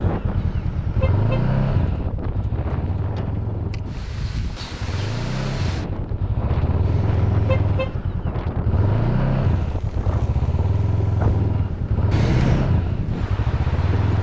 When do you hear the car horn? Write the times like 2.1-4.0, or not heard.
0.3-1.5, 6.8-8.0, 12.1-12.7.